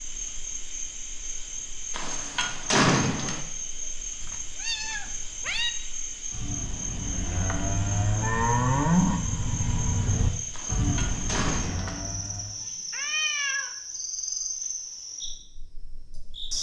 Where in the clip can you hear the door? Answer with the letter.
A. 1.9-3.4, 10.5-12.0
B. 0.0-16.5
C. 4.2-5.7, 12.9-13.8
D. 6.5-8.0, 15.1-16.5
A.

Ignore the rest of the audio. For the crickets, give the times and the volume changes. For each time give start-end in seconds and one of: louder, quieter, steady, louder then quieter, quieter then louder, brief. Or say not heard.
0.0-16.5 steady.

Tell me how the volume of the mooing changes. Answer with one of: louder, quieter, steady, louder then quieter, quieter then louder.
louder then quieter.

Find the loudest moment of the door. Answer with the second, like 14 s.
3 s.